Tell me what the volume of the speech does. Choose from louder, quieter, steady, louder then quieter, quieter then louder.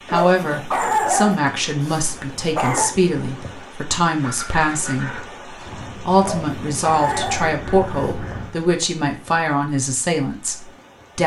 steady.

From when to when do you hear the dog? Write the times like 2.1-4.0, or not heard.
0.1-3.0, 6.2-8.2.